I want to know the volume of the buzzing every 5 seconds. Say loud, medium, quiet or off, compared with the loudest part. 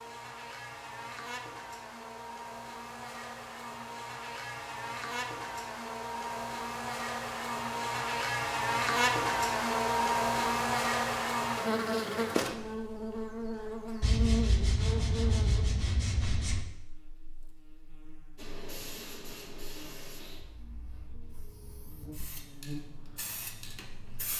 medium, loud, loud, quiet, quiet.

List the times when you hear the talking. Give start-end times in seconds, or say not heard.
not heard.